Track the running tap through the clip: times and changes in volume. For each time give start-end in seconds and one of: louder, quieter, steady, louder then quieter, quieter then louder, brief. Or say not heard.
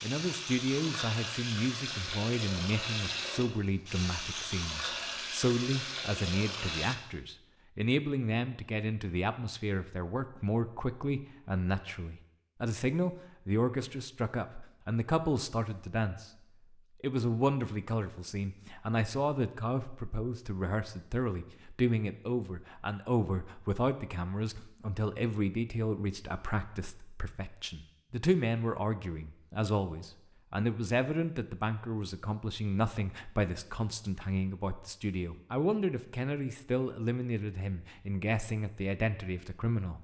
0.0-7.0 steady.